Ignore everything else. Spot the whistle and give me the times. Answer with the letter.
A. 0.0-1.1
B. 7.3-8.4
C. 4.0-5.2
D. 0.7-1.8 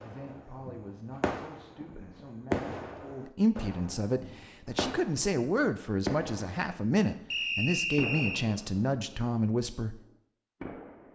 B.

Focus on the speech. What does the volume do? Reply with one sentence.
The loudness of the speech goes up.